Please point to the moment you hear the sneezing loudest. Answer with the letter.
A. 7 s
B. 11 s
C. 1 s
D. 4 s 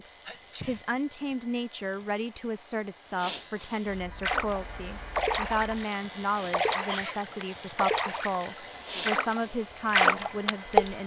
A.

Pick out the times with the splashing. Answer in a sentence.
You can hear the splashing from 4.2 to 10.9 s.